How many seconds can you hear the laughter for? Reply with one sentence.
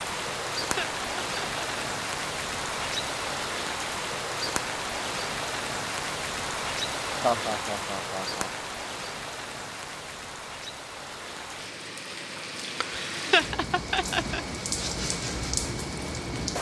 The laughter can be heard for 4 seconds in total.